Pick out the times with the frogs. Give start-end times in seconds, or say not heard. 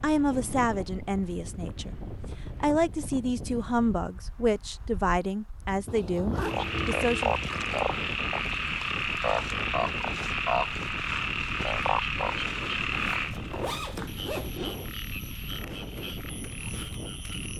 6.4-17.5.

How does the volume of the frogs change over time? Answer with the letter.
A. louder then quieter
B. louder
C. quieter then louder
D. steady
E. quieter
E.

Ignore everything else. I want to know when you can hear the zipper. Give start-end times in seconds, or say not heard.
0.2-0.8, 5.8-7.4, 12.9-14.8.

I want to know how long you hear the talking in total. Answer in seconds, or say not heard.
7 s.